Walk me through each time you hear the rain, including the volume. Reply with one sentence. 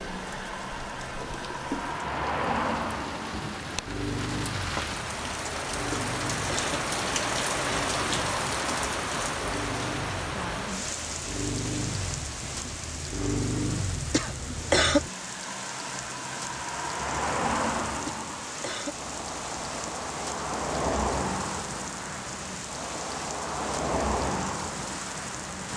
You can hear the rain from 0.0 to 25.7 s, getting louder then quieter.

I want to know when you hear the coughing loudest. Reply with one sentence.
The loudest moment of the coughing is at 15 seconds.